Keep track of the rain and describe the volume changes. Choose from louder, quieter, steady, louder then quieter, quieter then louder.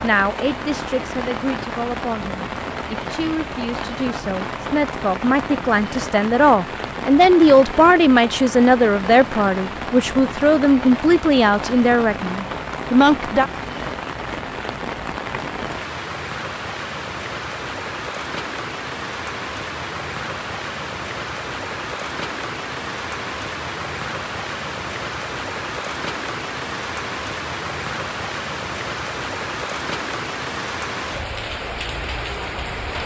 steady.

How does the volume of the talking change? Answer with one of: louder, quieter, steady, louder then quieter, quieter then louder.
louder.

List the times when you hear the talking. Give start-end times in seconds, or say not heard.
0.0-13.4.